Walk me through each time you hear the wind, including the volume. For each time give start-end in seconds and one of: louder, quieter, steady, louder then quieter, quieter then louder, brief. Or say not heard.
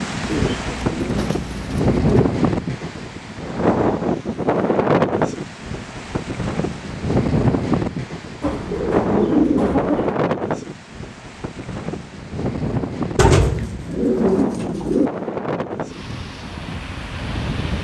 0.0-17.7 quieter.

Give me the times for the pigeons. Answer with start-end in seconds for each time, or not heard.
0.2-2.2, 8.4-10.2, 13.2-15.1.